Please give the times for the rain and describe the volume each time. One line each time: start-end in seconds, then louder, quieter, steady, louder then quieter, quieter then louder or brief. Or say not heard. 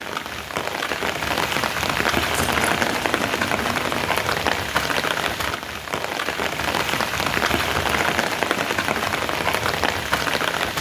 0.0-10.7 steady.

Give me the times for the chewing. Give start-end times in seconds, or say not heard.
2.3-4.1.